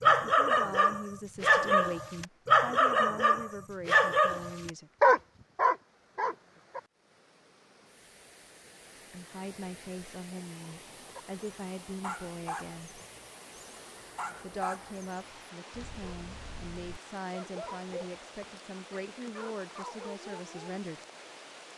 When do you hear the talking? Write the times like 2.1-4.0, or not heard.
0.1-4.9, 9.1-13.0, 14.4-21.0.